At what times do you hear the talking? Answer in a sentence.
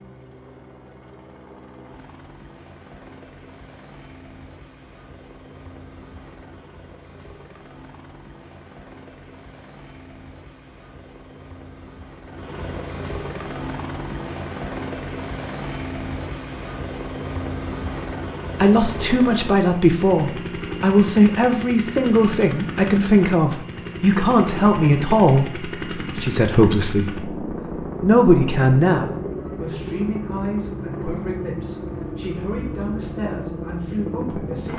The talking can be heard from 18.6 to 34.7 s.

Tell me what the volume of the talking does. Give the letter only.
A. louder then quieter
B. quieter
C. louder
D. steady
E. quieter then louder
B.